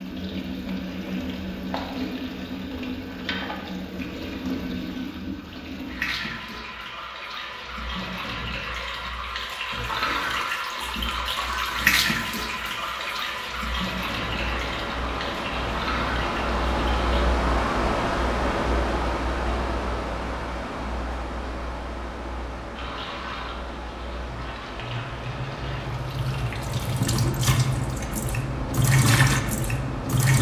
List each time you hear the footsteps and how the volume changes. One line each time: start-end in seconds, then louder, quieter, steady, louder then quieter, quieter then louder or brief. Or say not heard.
not heard.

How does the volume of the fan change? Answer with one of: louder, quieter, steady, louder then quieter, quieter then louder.
quieter.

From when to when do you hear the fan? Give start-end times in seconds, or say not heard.
13.9-30.3.